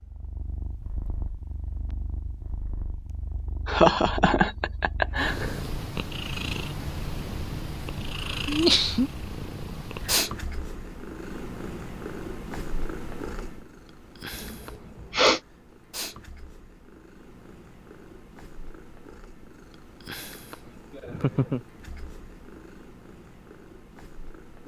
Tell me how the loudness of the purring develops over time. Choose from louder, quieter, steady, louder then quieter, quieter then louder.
louder then quieter.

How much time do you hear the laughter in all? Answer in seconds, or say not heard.
3 s.